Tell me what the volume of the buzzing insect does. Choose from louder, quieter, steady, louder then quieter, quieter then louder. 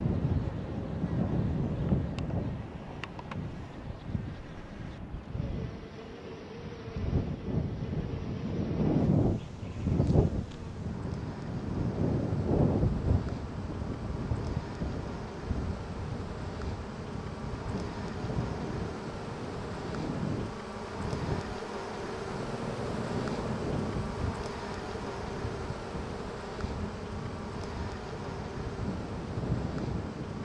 louder.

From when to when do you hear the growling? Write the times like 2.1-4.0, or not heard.
22.2-23.8.